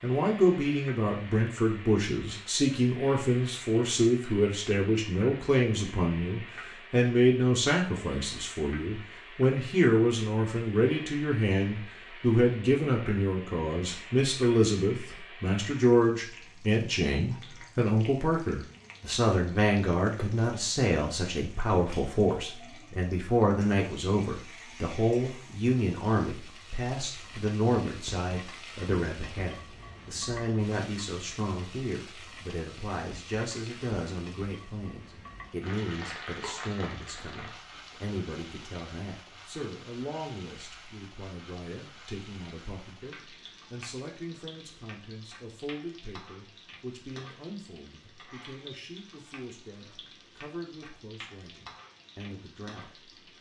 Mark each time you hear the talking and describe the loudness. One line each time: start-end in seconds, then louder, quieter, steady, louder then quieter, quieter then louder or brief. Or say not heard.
0.0-53.3 quieter.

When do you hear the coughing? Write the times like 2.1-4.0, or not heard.
not heard.